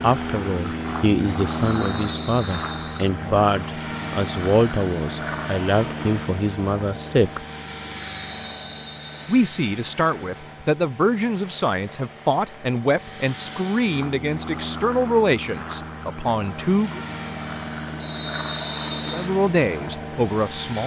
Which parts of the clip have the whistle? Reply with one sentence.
You can hear the whistle from 1.6 to 3.0 s, from 8.2 to 9.2 s and from 18.0 to 19.3 s.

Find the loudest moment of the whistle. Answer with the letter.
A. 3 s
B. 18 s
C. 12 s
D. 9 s
B.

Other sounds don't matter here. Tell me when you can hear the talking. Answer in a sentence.
You can hear the talking from 0.0 to 7.5 s, from 9.2 to 17.0 s and from 19.1 to 20.8 s.